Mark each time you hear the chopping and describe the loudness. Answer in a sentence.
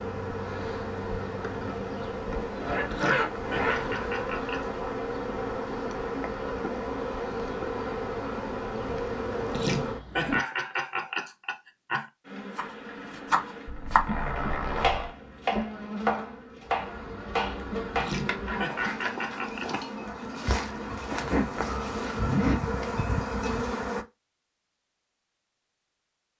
The chopping can be heard from 12.6 to 19.4 s, getting quieter.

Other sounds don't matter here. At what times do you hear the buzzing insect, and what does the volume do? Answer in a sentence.
You can hear the buzzing insect from 0.0 to 10.4 s, at a steady volume; and from 12.2 to 24.1 s, getting louder.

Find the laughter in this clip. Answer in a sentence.
The laughter can be heard from 2.9 to 4.7 s, from 9.5 to 12.1 s and from 17.9 to 19.8 s.